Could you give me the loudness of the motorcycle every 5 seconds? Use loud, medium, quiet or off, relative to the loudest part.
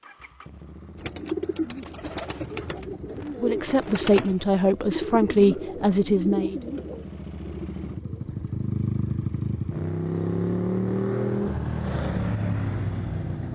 quiet, medium, loud.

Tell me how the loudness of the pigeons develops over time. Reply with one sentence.
The volume of the pigeons goes down.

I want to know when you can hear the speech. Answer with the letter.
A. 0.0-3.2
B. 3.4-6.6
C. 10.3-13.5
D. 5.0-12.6
B.